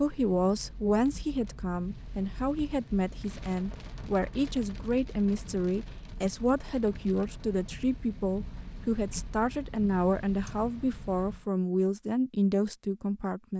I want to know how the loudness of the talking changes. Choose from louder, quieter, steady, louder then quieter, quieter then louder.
steady.